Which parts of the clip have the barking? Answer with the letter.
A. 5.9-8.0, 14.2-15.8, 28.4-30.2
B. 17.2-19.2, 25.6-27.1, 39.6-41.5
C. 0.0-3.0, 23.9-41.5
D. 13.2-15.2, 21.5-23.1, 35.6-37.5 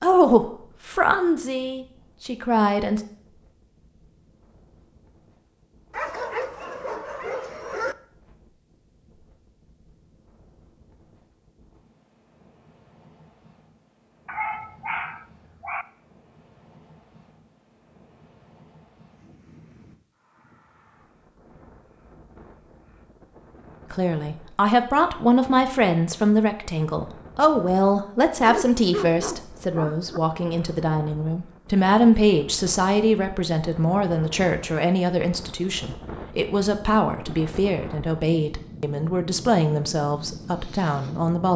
A.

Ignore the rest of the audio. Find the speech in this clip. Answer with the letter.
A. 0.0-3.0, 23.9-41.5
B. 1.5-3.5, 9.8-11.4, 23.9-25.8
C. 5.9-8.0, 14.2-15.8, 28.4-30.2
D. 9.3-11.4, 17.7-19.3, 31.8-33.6
A.